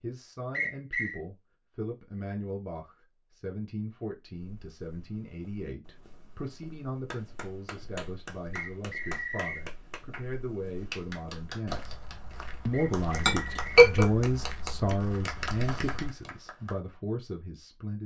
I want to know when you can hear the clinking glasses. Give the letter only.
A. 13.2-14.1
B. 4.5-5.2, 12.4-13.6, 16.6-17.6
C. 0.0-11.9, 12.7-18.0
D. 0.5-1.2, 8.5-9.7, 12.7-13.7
A.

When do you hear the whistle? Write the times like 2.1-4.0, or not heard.
0.5-1.2, 8.5-9.7, 12.7-13.7.